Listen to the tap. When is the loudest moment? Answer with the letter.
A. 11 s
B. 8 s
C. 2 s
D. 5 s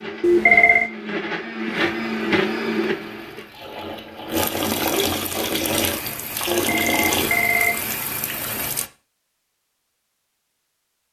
D.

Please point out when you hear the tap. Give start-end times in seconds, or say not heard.
1.8-8.9.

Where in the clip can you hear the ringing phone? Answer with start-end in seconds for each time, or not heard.
0.2-0.8, 6.5-7.8.